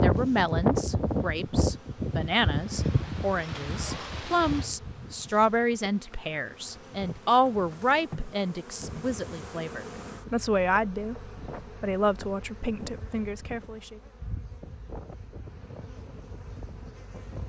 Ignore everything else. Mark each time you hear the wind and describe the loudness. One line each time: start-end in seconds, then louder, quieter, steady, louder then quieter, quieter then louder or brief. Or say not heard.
0.0-17.4 quieter.